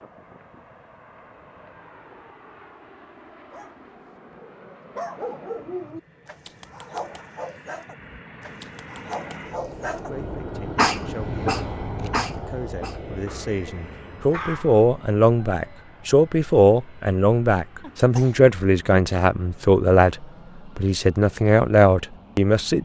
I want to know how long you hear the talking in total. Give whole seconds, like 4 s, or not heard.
13 s.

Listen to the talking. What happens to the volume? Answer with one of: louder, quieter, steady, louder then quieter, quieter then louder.
louder.